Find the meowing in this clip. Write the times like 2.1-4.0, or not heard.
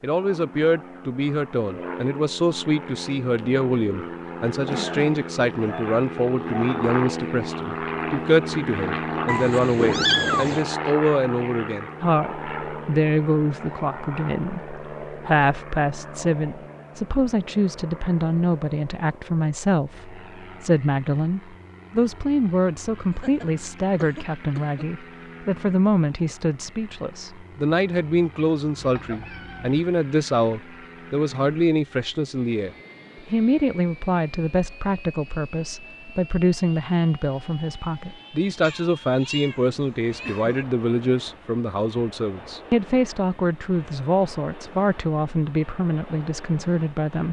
9.2-10.7, 28.8-29.8, 38.6-40.6.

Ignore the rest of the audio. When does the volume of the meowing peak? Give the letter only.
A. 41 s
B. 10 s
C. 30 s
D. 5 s
B.